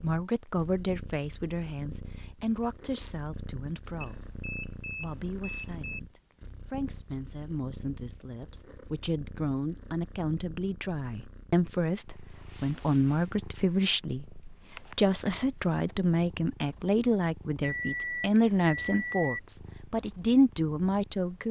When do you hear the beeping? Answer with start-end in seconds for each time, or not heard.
4.0-6.0, 17.6-19.4.